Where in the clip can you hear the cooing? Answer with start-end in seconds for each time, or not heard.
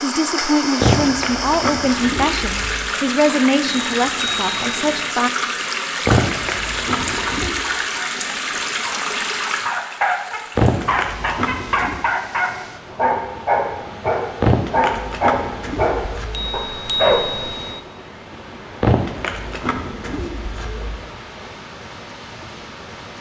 0.8-2.9, 6.0-7.6, 10.6-12.0, 14.4-16.6, 18.8-21.0.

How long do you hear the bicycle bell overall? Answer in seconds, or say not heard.
3 s.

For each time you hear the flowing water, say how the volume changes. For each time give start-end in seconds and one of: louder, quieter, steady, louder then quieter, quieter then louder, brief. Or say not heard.
0.0-23.1 quieter.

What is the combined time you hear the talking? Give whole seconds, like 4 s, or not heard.
5 s.